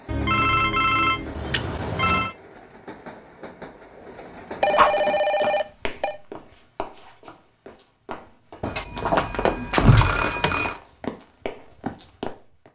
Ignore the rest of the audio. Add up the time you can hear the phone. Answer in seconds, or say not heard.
6 s.